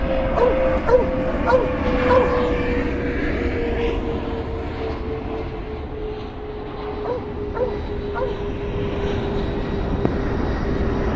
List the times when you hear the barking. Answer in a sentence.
The barking can be heard from 0.3 to 2.3 s and from 7.0 to 8.3 s.